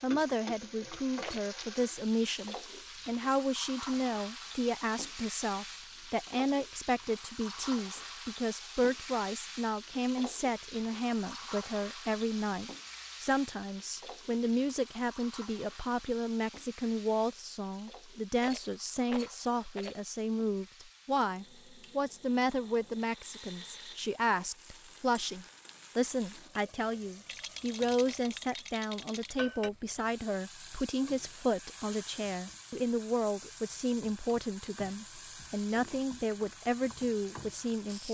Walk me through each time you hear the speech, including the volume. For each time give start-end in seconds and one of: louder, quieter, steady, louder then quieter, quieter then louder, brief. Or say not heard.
0.0-38.0 steady.